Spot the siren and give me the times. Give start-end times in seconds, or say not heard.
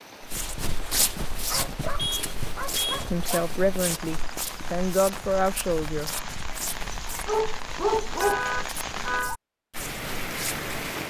not heard.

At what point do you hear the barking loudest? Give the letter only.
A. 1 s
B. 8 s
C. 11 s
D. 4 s
B.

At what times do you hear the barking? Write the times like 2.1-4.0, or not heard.
1.3-3.5, 7.1-8.5.